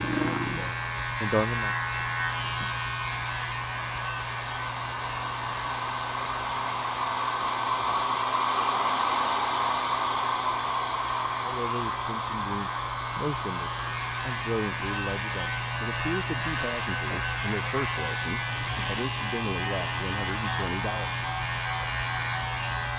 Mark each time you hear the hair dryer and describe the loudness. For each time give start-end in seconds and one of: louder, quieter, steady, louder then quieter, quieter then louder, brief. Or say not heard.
0.0-22.9 louder then quieter.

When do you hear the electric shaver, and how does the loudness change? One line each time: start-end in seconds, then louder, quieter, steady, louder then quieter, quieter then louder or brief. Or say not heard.
0.0-22.9 quieter then louder.